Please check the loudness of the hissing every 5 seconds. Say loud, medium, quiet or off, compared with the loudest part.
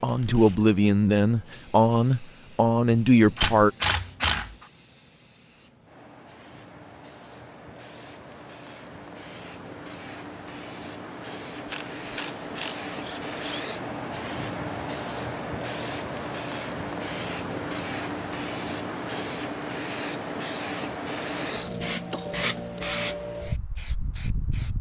quiet, quiet, loud, loud, loud.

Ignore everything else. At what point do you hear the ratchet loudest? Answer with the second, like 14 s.
4 s.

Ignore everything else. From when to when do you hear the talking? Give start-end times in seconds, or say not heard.
0.0-3.7.